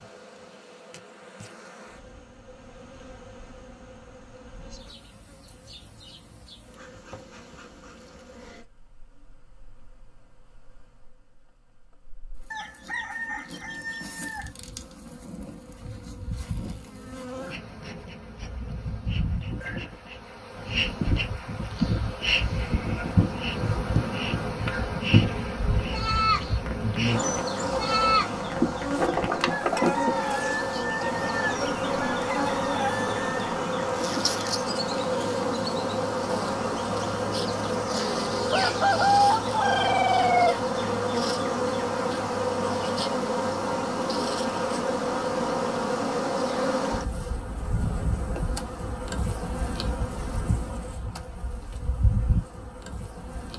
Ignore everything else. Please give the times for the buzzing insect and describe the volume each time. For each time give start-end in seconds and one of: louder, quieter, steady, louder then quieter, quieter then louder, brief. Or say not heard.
0.0-53.5 louder.